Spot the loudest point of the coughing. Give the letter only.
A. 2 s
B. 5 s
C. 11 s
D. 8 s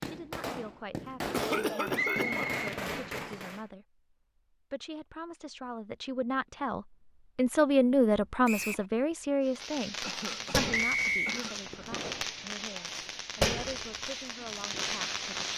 A.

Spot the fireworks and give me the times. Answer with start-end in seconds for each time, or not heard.
0.0-3.6, 9.4-15.5.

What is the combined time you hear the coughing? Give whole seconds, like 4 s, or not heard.
3 s.